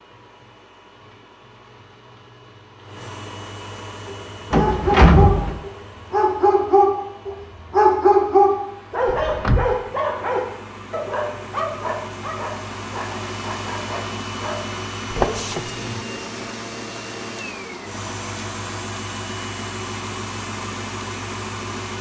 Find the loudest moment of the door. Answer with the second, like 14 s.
5 s.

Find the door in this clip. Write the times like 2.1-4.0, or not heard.
4.5-5.6, 9.1-9.8, 15.1-15.6.